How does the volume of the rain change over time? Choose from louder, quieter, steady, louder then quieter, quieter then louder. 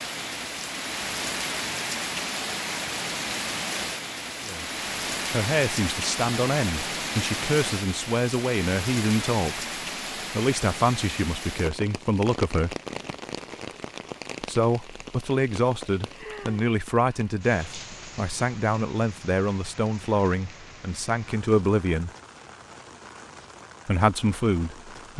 quieter.